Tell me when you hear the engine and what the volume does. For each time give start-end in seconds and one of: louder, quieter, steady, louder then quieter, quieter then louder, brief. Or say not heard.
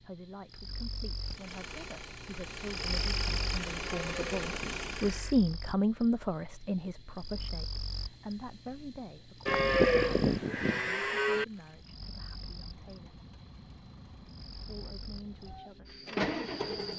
1.2-5.4 louder
11.4-16.9 louder.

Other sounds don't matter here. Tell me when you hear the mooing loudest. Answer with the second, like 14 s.
10 s.